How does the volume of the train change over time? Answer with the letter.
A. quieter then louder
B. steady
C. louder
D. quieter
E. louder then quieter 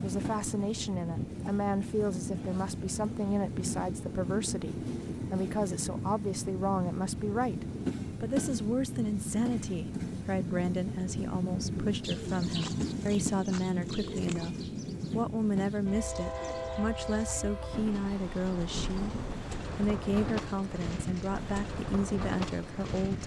B.